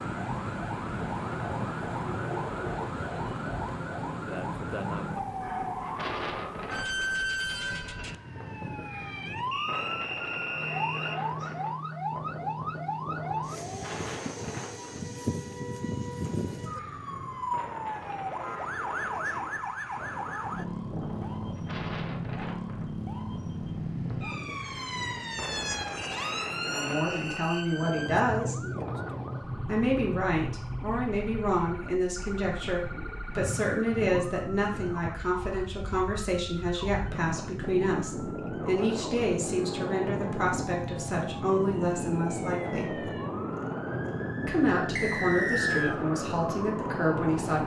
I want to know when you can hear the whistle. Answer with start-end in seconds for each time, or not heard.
9.5-11.2, 25.9-27.6, 45.0-46.0.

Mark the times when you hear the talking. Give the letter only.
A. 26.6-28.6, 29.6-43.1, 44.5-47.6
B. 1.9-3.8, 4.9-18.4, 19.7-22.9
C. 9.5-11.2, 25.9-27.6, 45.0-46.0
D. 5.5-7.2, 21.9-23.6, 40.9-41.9
A.